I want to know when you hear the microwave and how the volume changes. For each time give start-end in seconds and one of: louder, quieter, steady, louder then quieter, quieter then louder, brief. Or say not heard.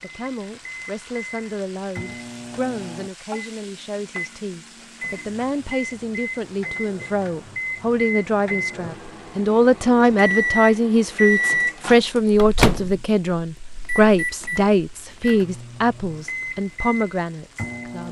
0.0-18.0 louder then quieter.